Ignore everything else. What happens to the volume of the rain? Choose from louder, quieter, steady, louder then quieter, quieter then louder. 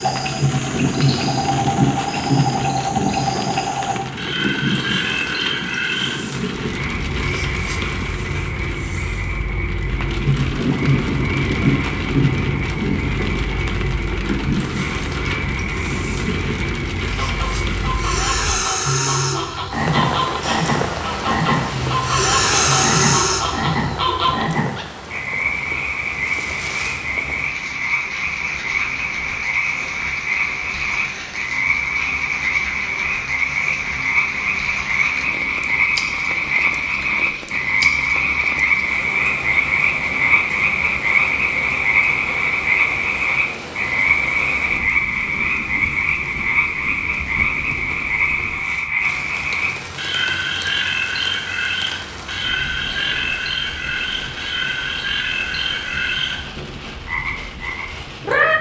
quieter.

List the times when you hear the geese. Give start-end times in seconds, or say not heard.
17.1-24.4.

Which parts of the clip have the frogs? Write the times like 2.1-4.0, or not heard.
0.0-58.5.